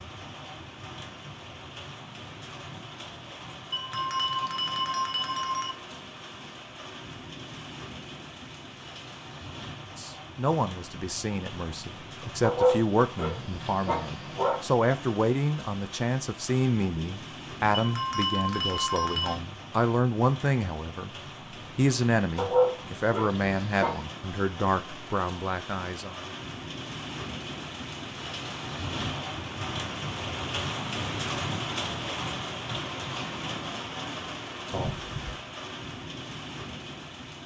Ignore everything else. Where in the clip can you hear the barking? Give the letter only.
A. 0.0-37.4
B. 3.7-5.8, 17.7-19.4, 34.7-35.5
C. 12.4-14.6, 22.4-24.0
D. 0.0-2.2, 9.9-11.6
C.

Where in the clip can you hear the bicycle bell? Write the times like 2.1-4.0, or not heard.
3.7-5.8, 17.7-19.4, 34.7-35.5.